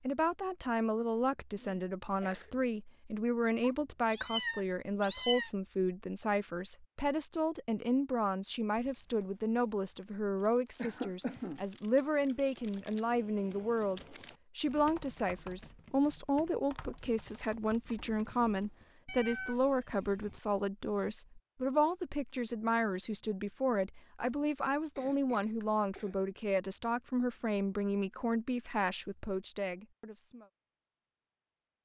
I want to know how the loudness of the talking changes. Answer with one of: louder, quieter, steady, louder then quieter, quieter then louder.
steady.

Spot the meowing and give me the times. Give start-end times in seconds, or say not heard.
3.6-5.5, 19.1-20.4.